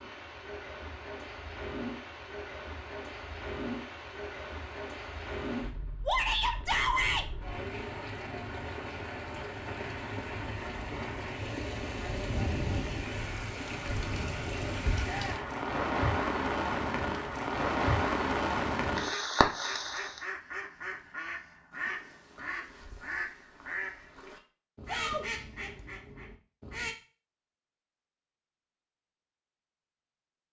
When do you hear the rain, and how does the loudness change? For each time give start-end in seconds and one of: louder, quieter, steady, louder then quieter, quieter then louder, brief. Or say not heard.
0.0-20.2 louder.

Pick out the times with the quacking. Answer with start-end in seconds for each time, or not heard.
19.1-26.9.